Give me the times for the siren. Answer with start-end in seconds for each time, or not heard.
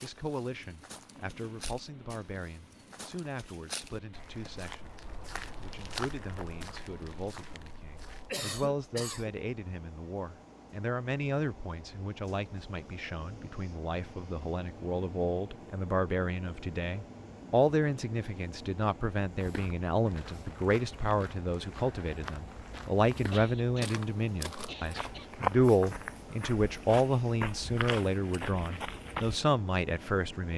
not heard.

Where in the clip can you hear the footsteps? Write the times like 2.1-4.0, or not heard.
0.0-8.3, 19.4-29.4.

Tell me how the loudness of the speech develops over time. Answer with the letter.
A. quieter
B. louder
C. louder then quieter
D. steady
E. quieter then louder
B.